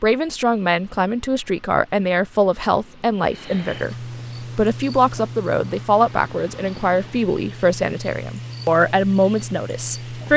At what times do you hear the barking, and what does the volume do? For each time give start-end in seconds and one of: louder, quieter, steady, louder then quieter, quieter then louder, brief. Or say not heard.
not heard.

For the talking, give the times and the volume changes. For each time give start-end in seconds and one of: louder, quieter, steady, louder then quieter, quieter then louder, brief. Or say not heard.
0.0-10.3 steady.